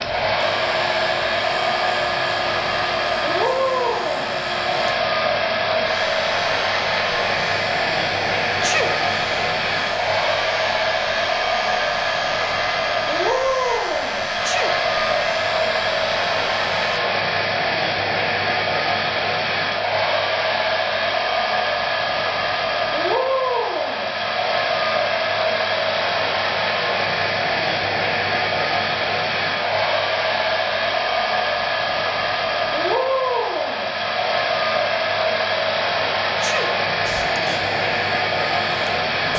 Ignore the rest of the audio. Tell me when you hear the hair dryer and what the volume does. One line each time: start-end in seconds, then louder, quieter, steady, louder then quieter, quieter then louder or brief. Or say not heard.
0.0-39.3 steady.